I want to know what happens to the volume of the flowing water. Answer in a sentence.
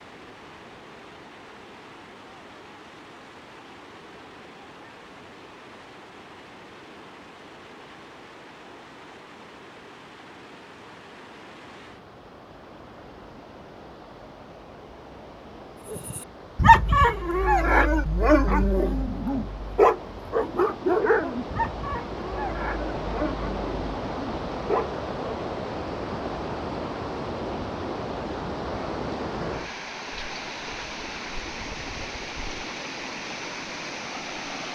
The volume of the flowing water goes up.